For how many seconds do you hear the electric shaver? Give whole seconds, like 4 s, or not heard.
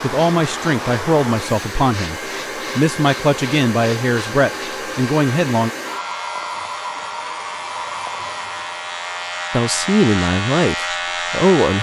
12 s.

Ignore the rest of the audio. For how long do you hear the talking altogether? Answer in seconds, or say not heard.
8 s.